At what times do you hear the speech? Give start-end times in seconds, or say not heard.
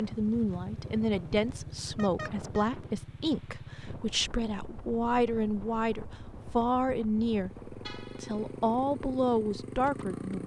0.0-10.4.